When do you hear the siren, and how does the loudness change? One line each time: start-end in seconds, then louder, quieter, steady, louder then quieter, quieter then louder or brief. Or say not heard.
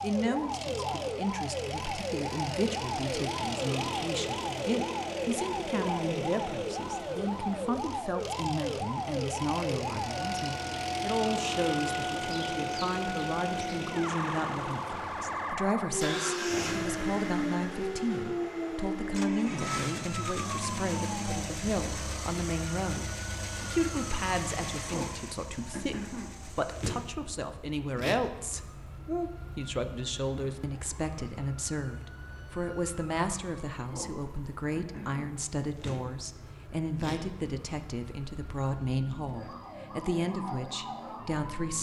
0.0-41.7 quieter.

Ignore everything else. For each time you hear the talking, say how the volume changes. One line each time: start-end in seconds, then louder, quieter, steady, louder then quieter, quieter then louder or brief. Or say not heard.
0.0-41.7 steady.